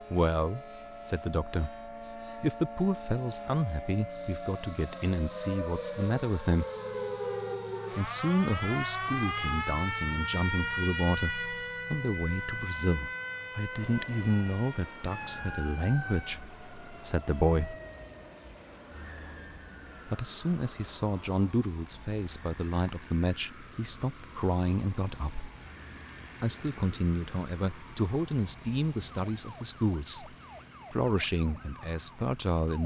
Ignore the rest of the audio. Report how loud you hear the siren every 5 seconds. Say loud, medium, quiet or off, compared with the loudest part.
medium, loud, loud, medium, quiet, quiet, quiet.